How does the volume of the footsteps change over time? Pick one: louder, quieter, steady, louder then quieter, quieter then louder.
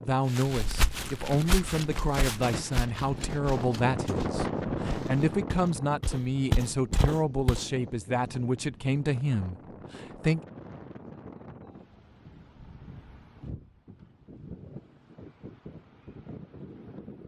quieter then louder.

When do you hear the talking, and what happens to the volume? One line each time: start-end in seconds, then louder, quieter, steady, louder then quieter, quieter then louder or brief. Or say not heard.
0.0-10.4 steady.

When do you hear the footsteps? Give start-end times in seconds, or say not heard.
0.3-7.7.